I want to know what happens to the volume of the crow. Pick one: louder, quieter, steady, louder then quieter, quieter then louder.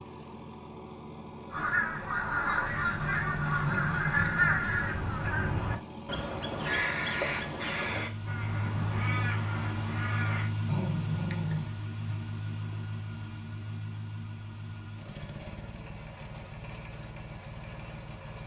quieter.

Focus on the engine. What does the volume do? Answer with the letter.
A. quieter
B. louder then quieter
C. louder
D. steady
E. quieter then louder
B.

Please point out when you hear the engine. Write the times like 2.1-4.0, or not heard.
0.0-18.4.